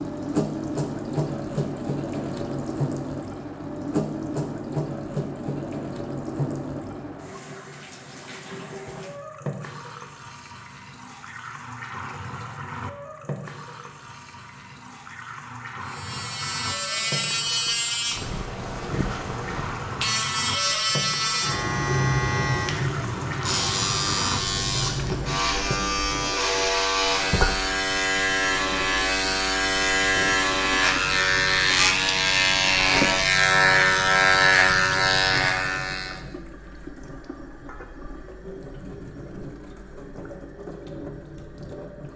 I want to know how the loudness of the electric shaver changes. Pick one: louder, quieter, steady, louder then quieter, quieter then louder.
louder.